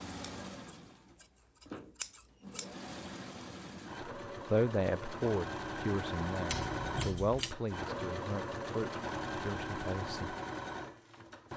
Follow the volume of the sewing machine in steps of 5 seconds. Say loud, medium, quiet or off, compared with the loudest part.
medium, loud, loud.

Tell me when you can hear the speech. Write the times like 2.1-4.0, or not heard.
4.5-10.3.